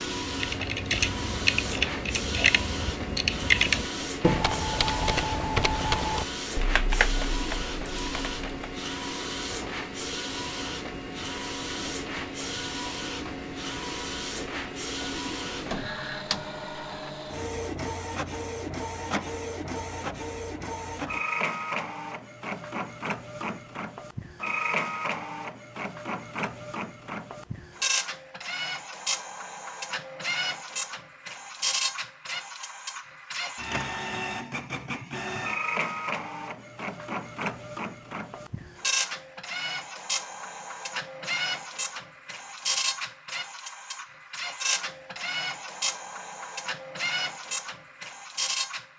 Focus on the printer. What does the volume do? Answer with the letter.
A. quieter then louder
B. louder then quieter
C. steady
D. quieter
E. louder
C.